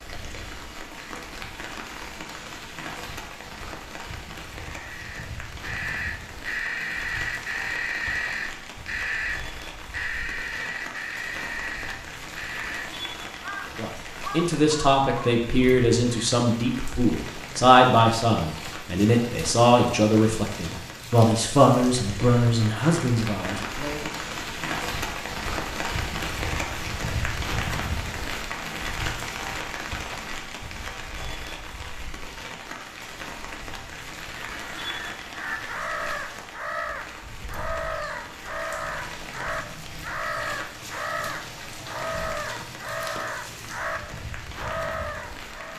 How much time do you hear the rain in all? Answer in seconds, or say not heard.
46 s.